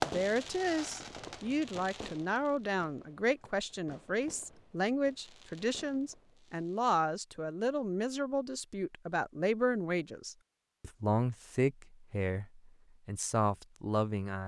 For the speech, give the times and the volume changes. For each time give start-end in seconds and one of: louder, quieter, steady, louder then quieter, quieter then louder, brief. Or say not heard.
0.0-14.4 steady.